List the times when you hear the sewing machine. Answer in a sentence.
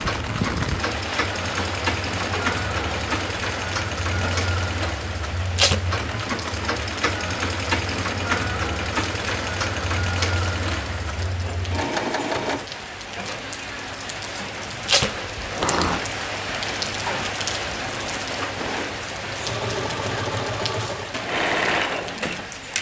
The sewing machine can be heard from 0.0 to 12.7 s and from 18.6 to 22.7 s.